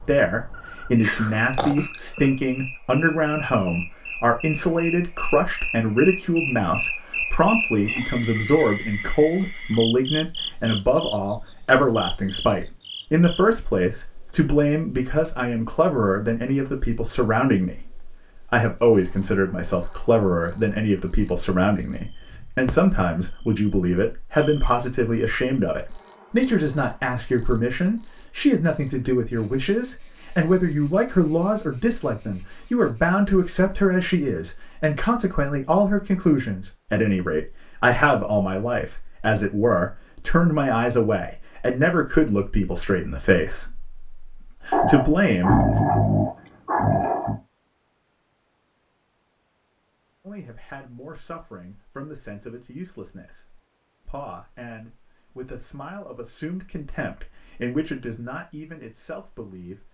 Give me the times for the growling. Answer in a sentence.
The growling can be heard from 1.0 to 2.4 s and from 44.7 to 47.4 s.